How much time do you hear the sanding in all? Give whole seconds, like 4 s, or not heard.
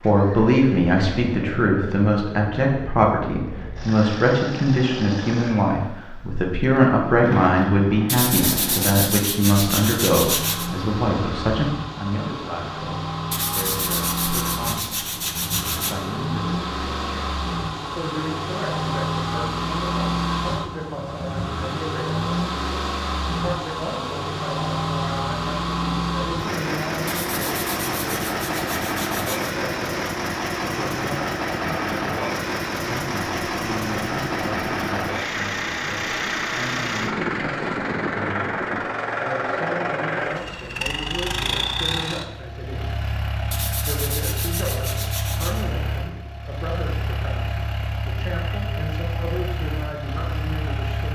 10 s.